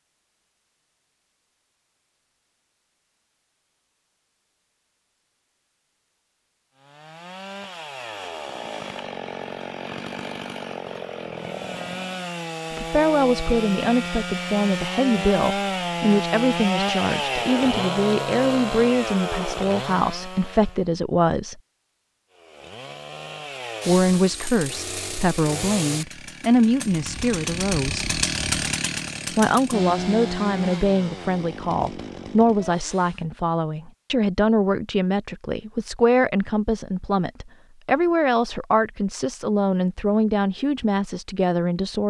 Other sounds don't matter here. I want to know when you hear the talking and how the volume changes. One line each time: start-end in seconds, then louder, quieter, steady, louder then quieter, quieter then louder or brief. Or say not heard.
12.7-21.6 steady
23.9-28.1 louder then quieter
29.3-42.0 steady.